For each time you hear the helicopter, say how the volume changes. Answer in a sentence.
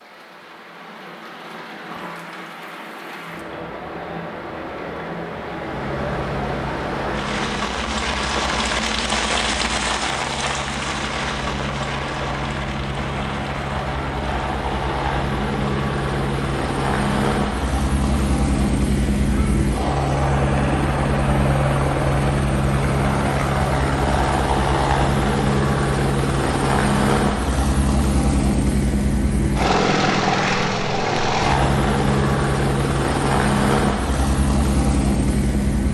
The helicopter can be heard from 5.5 to 35.8 s, getting louder.